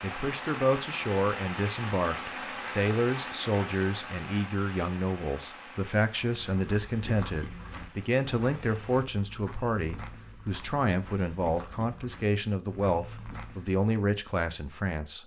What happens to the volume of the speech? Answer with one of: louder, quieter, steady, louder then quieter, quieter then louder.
steady.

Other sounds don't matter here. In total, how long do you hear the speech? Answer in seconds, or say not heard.
15 s.